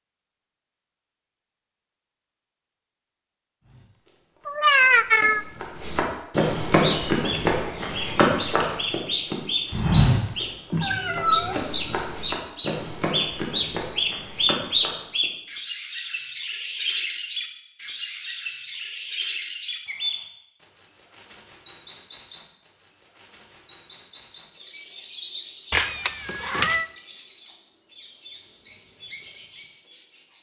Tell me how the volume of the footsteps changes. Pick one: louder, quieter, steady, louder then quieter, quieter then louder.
louder then quieter.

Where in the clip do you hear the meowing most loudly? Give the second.
5 s.